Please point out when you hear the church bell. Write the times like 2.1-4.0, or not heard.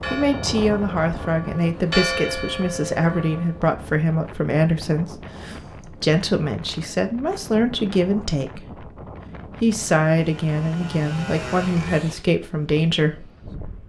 0.0-3.6.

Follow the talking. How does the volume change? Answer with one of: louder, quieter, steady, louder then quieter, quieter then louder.
steady.